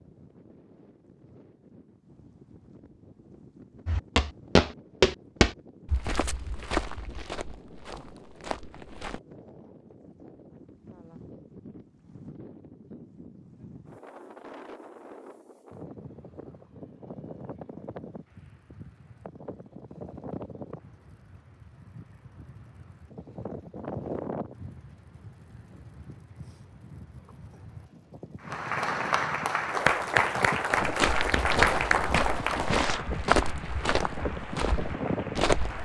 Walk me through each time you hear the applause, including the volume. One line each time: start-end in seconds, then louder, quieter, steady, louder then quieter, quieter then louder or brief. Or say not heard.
28.4-35.7 quieter.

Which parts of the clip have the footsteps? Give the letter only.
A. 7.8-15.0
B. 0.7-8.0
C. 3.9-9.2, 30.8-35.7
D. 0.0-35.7
C.